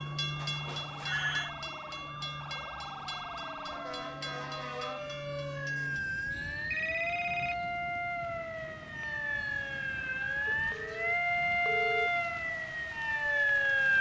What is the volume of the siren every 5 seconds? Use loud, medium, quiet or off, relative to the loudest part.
quiet, medium, loud.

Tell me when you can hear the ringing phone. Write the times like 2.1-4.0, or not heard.
0.3-1.5, 5.8-7.5, 10.4-12.1.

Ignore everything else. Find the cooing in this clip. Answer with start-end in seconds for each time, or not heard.
not heard.